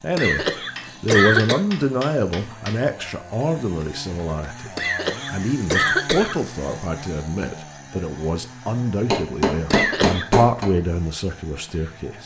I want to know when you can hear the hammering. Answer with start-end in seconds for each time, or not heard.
0.8-2.8, 9.1-10.7.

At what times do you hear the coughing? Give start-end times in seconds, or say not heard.
0.1-1.6, 4.8-6.4, 9.7-10.3.